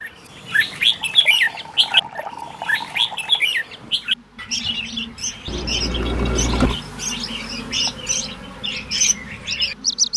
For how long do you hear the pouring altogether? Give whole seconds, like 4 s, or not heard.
4 s.